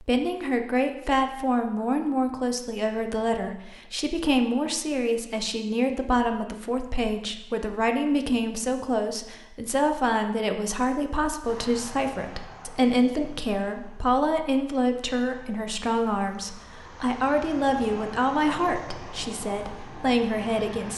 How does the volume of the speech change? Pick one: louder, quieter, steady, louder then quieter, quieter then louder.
steady.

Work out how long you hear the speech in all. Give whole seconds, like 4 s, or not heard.
21 s.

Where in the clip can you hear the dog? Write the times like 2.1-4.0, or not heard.
not heard.